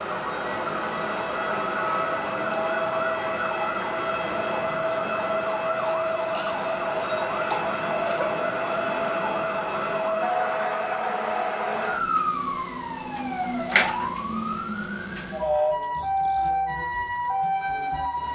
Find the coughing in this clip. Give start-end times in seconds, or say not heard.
5.7-8.3.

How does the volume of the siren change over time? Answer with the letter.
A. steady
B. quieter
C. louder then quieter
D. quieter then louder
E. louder
A.